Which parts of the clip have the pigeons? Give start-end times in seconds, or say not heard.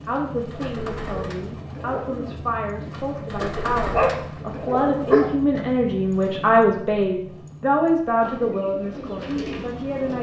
0.0-5.7, 8.2-10.1.